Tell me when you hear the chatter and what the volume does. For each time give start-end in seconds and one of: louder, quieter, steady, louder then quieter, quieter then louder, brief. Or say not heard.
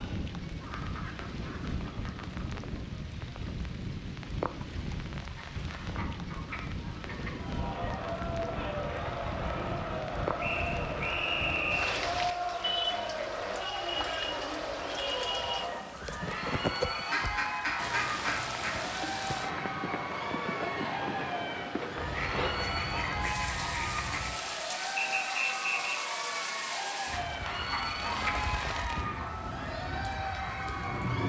7.2-31.2 steady.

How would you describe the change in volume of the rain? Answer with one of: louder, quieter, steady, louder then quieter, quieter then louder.
steady.